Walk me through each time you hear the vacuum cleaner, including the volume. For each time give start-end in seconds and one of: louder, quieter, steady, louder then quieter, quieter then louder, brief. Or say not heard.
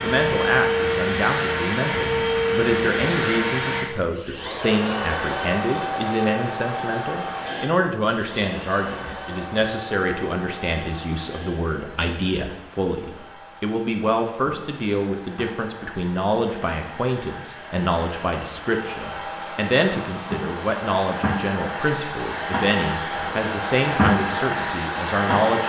0.0-25.6 quieter then louder.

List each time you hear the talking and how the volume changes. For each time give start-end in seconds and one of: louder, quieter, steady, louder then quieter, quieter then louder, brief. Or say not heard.
0.0-25.6 steady.